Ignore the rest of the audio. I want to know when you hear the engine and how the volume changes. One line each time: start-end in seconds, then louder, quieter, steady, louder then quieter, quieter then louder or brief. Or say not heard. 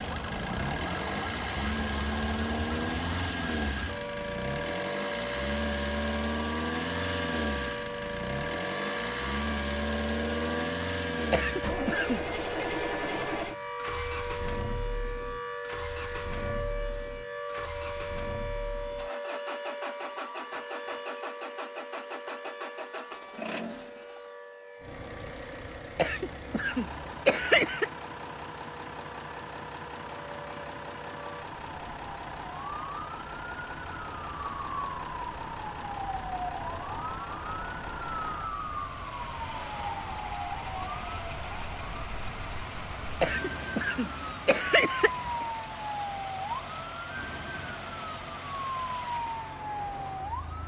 0.0-50.6 quieter.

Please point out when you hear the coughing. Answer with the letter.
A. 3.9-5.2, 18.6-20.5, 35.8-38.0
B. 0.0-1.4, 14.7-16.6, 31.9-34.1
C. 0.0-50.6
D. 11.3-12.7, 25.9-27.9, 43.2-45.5
D.